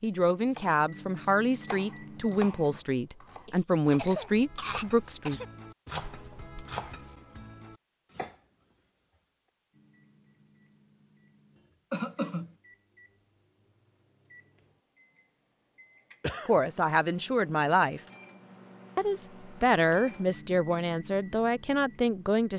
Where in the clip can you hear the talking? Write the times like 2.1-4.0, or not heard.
0.0-5.4, 16.4-18.0, 18.9-22.5.